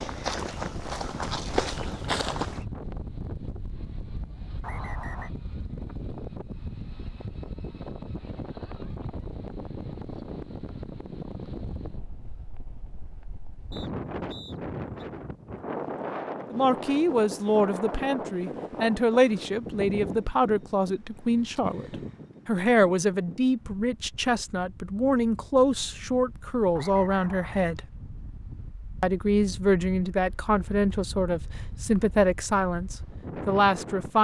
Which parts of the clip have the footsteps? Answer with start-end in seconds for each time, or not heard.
0.0-2.6.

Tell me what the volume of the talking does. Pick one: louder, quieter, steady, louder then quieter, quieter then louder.
steady.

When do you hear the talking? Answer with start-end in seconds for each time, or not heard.
16.5-27.8, 29.0-34.1.